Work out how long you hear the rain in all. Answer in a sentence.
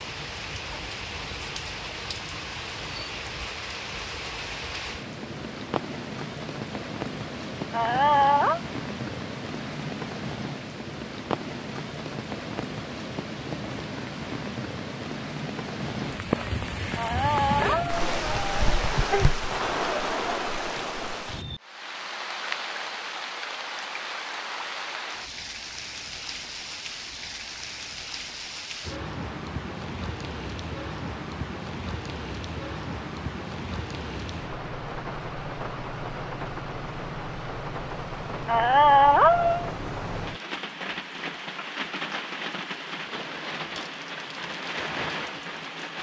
The rain can be heard for 46 seconds in total.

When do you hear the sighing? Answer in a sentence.
The sighing can be heard from 7.7 to 8.6 s, from 16.9 to 19.4 s and from 38.5 to 39.7 s.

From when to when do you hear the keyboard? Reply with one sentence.
The keyboard can't be heard in this clip.